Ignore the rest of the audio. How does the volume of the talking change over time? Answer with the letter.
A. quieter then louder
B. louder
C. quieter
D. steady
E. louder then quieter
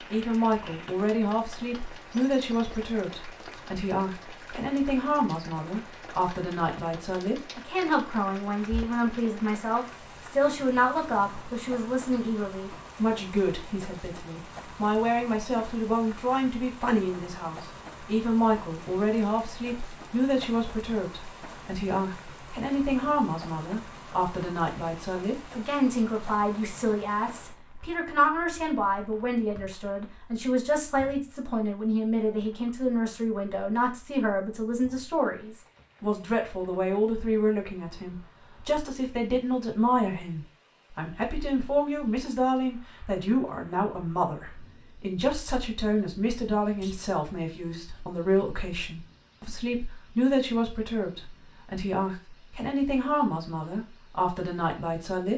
D.